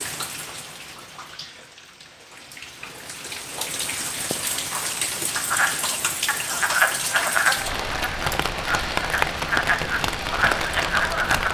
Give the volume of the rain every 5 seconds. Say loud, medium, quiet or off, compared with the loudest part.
medium, loud, loud.